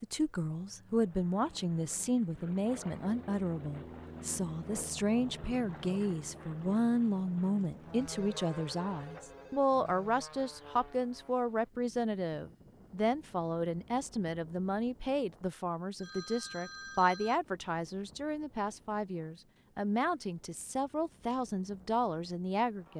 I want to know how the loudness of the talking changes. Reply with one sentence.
The loudness of the talking stays about the same.